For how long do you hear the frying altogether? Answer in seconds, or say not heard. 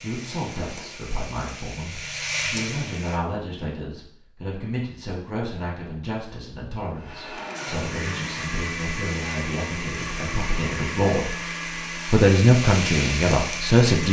10 s.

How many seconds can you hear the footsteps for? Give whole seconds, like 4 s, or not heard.
not heard.